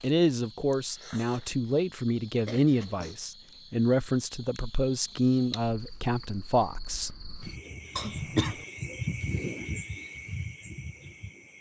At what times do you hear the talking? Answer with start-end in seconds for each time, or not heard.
0.0-7.2.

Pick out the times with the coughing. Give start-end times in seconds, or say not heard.
2.5-3.1, 8.0-8.6.